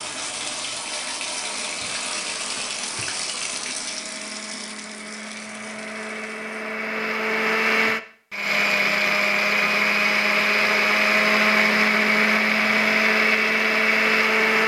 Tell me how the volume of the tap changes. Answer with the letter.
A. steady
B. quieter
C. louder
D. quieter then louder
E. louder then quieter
B.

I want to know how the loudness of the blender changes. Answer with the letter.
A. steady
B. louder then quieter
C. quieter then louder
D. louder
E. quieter
D.